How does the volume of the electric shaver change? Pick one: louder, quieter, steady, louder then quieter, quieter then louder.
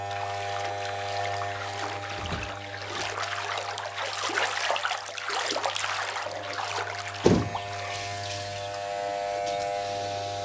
quieter then louder.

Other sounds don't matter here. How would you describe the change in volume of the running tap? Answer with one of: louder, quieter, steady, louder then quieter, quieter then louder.
louder then quieter.